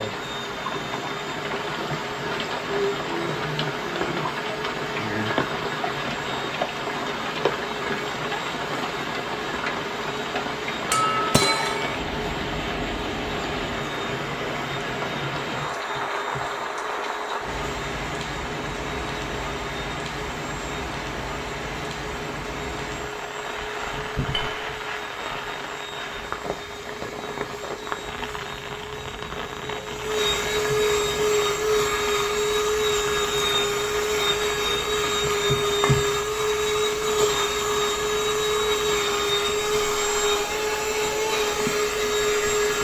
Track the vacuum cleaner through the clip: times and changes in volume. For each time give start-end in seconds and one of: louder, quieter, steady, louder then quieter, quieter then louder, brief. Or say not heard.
0.0-42.7 louder.